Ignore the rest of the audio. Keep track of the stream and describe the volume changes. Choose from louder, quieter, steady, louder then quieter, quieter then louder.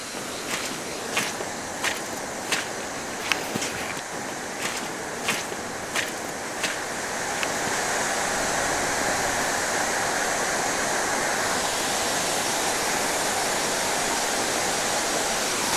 louder.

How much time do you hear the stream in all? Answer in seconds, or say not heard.
16 s.